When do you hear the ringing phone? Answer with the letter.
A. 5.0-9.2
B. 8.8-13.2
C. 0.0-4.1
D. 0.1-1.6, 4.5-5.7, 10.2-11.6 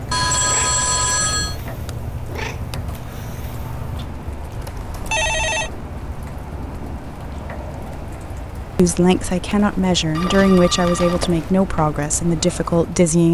D.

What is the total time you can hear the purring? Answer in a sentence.
The purring can be heard for 4 seconds in total.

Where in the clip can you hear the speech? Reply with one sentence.
The speech can be heard from 8.8 to 13.2 s.